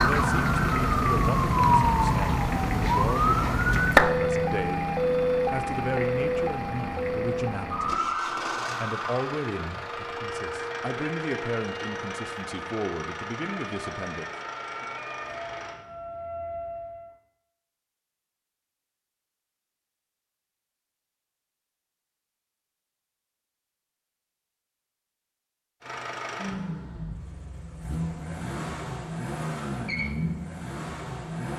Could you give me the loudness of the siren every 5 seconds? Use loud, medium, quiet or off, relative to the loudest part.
loud, medium, quiet, quiet, off, off, off.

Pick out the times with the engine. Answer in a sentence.
You can hear the engine from 0.0 to 15.8 s and from 25.8 to 31.5 s.